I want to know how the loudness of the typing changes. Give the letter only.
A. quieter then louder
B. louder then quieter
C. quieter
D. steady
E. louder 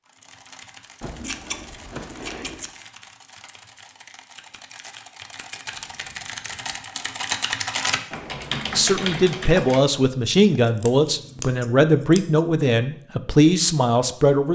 E.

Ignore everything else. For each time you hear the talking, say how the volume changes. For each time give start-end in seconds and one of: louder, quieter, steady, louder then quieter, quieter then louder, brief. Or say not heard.
8.7-14.4 steady.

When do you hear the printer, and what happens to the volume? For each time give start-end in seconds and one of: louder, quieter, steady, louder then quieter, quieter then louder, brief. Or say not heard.
not heard.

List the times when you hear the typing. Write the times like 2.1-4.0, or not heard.
0.1-9.8.